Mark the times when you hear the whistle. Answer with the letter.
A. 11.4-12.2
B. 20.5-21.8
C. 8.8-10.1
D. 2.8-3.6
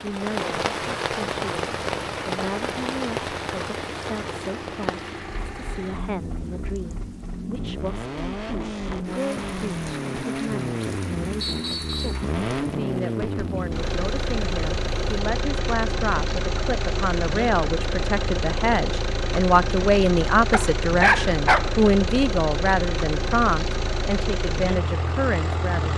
A.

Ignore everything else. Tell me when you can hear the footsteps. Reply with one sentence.
You can't hear the footsteps here.